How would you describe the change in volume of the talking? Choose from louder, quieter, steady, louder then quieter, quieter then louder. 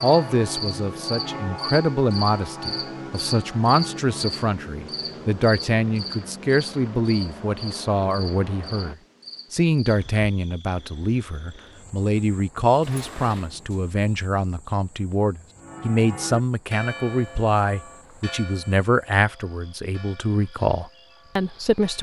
steady.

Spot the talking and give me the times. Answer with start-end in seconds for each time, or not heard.
0.0-21.9.